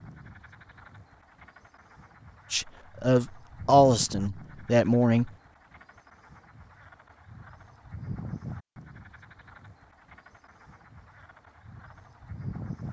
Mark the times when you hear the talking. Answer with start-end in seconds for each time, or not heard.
2.5-5.3.